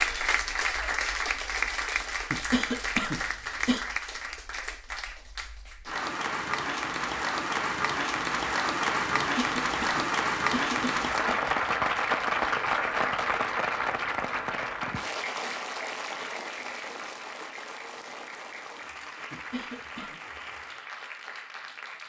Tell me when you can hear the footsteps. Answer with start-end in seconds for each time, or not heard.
not heard.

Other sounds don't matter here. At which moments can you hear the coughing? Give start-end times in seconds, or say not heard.
2.3-3.9, 9.2-11.6, 19.3-20.1.